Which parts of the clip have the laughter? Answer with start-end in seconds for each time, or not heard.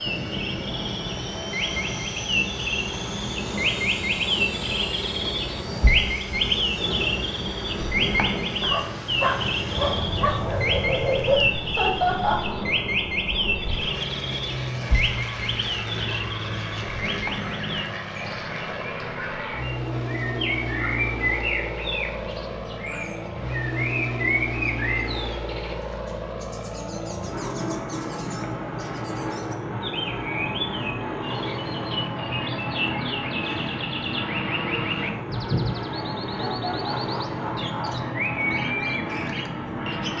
11.6-12.6, 36.4-38.0.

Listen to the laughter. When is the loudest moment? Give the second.
12 s.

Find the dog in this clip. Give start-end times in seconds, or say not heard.
8.6-11.6.